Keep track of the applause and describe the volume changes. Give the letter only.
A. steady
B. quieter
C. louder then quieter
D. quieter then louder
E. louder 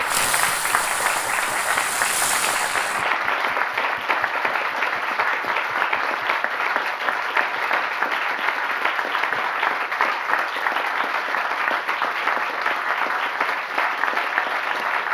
A.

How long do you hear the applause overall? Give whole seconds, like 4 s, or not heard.
15 s.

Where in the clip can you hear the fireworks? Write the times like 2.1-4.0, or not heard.
0.0-3.0.